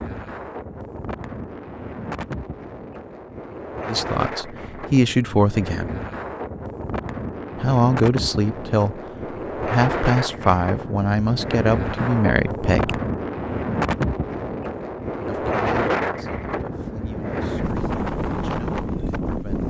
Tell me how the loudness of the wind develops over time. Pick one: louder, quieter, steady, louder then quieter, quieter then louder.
louder.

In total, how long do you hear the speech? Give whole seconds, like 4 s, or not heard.
12 s.